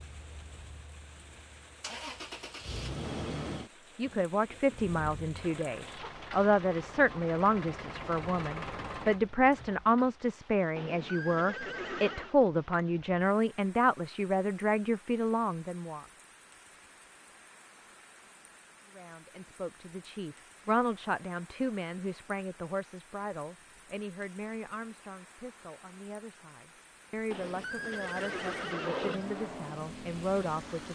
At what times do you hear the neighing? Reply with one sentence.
The neighing can be heard from 10.8 to 12.3 s and from 27.3 to 29.4 s.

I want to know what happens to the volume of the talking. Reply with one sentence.
The volume of the talking goes down.